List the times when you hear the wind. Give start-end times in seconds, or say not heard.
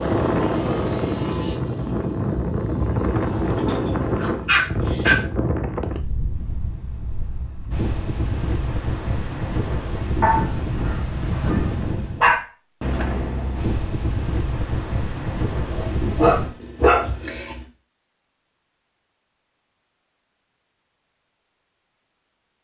0.0-16.6.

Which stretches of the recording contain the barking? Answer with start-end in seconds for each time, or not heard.
3.5-5.2, 10.2-12.4, 15.7-17.6.